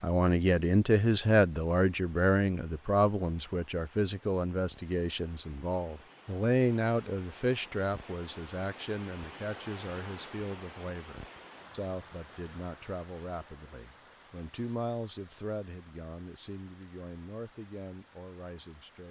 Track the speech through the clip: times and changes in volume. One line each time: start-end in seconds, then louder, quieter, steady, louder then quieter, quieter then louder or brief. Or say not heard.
0.0-19.0 quieter.